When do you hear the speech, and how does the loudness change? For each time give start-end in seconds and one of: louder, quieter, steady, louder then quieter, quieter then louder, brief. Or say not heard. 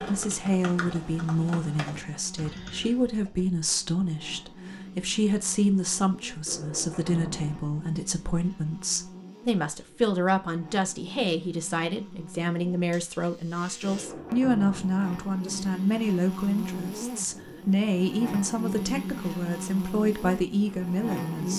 0.0-21.5 steady.